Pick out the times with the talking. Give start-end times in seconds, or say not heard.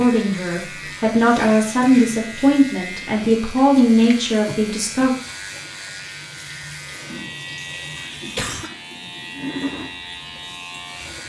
0.0-5.2.